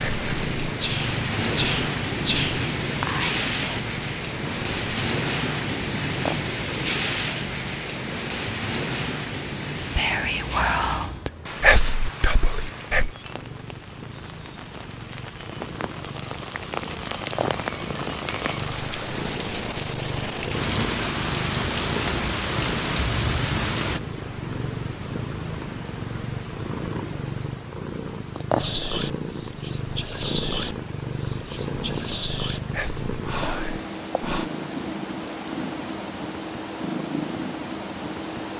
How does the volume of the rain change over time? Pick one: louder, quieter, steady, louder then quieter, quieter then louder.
quieter then louder.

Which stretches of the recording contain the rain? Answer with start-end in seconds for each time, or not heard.
0.0-24.0.